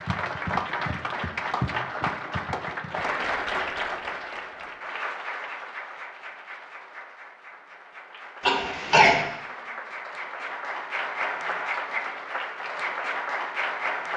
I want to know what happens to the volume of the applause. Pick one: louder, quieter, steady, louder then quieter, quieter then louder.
quieter then louder.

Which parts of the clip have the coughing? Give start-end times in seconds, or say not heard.
8.4-9.2.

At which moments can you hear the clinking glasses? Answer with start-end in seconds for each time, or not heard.
not heard.